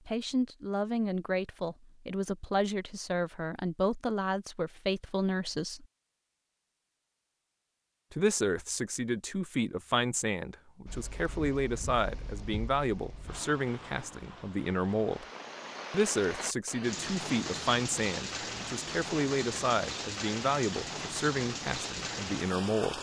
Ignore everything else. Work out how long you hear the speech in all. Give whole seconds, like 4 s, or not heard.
20 s.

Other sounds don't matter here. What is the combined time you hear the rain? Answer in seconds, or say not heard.
12 s.